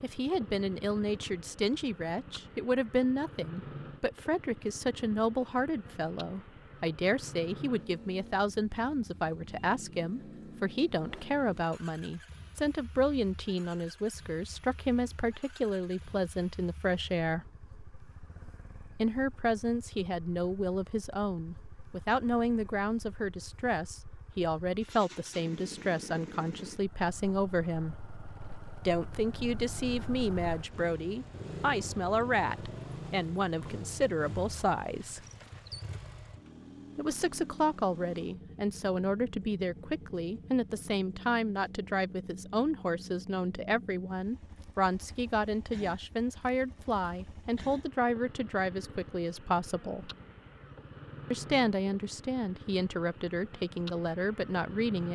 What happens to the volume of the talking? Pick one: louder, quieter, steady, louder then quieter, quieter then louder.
steady.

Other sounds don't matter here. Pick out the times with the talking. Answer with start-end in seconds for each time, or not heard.
0.0-17.4, 18.9-27.9, 28.9-35.2, 37.0-50.1, 51.3-55.1.